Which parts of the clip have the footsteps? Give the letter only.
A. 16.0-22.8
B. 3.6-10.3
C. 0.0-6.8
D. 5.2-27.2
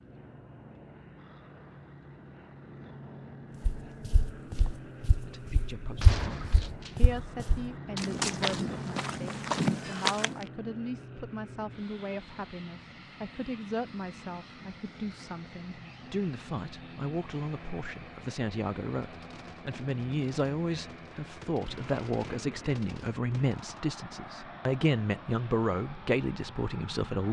B.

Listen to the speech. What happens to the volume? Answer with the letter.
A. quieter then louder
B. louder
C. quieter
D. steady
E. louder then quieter
B.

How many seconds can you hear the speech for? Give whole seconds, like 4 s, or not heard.
22 s.